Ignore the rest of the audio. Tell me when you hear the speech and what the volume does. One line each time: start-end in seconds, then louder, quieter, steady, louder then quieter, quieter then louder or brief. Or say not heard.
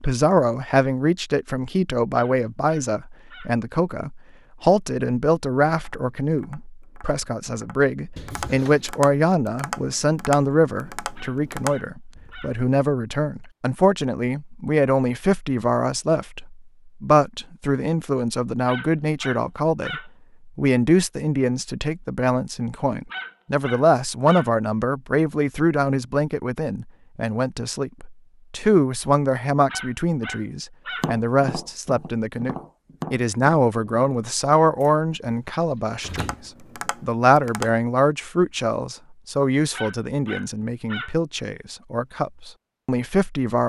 0.0-43.6 steady.